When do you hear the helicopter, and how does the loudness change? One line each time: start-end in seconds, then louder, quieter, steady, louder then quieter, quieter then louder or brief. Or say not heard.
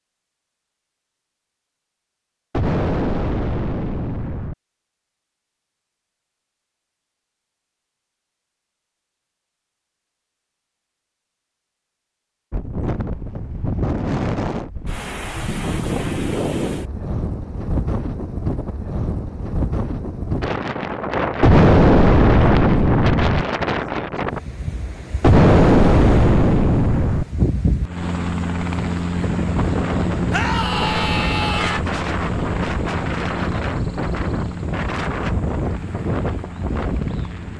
27.8-37.5 quieter.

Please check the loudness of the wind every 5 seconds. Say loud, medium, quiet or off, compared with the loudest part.
off, off, loud, loud, loud, loud, loud, loud.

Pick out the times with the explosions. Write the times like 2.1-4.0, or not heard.
2.5-4.5, 21.4-23.4, 25.2-27.2.